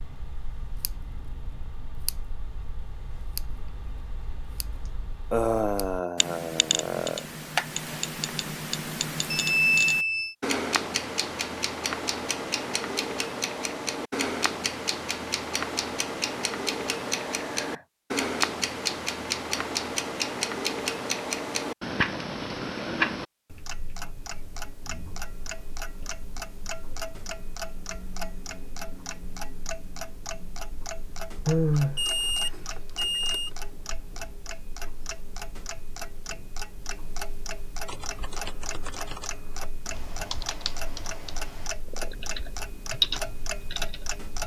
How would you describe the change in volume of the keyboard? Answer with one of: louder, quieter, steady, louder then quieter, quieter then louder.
louder.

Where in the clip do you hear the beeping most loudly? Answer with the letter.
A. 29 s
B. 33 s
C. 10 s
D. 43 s
C.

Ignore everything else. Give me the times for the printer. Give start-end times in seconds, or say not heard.
not heard.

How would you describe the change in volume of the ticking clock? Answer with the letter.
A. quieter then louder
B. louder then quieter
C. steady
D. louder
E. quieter
B.